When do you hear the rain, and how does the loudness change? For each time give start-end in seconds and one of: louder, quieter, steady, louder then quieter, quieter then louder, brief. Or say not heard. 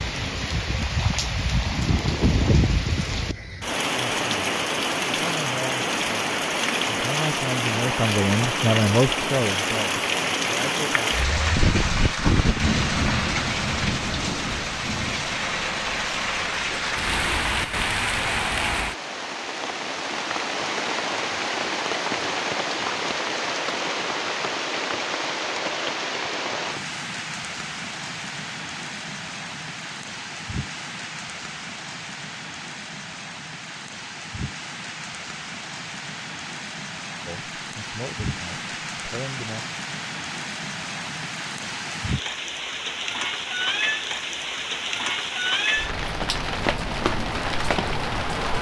0.0-48.5 quieter then louder.